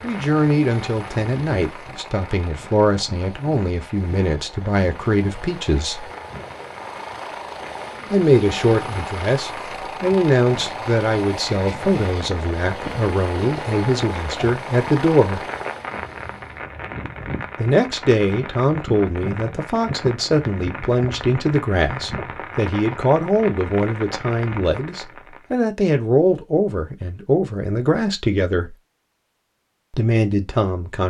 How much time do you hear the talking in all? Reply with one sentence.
The talking can be heard for 26 seconds in total.